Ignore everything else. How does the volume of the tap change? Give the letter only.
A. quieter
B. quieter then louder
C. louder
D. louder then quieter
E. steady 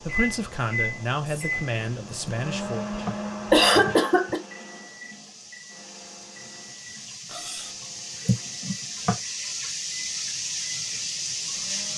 C.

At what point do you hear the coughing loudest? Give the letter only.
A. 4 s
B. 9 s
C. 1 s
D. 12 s
A.